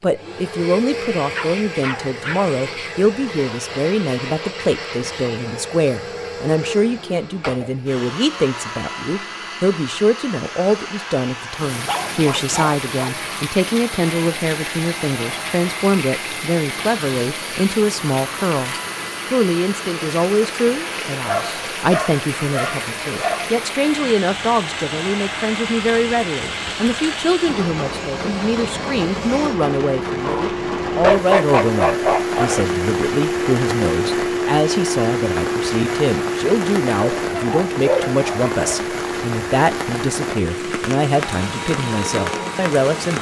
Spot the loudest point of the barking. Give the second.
31 s.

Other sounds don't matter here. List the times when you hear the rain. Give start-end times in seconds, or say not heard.
11.5-43.1.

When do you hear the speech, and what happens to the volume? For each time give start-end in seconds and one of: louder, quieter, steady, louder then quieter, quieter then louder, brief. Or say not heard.
0.0-43.1 steady.